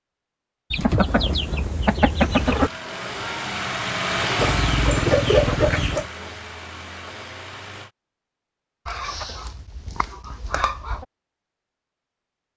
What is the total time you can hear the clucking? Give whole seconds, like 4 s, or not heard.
6 s.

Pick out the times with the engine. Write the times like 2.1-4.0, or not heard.
2.3-7.9.